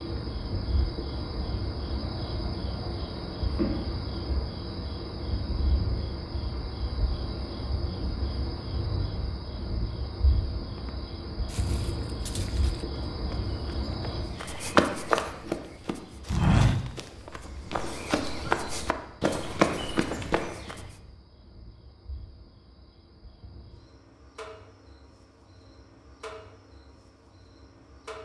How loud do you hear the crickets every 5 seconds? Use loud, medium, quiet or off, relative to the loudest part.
loud, loud, loud, quiet, quiet, quiet.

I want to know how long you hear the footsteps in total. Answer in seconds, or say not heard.
10 s.